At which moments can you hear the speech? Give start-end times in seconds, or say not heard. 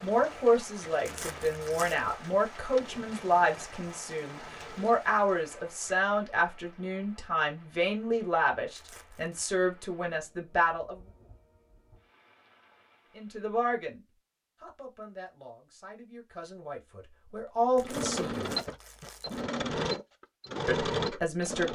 0.0-11.0, 13.2-18.6, 20.6-21.7.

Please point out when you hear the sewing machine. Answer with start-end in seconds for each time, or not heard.
0.0-5.0, 17.8-21.7.